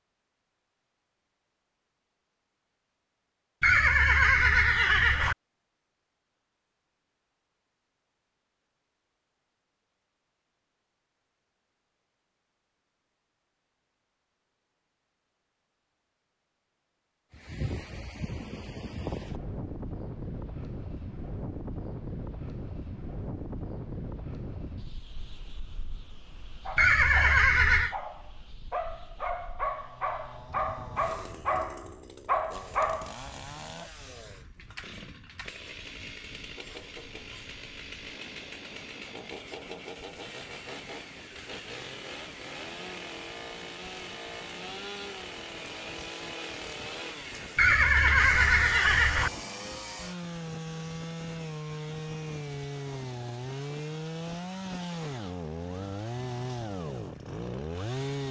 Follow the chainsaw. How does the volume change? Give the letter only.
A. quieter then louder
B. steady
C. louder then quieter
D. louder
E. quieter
D.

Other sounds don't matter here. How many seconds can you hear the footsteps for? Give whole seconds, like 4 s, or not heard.
not heard.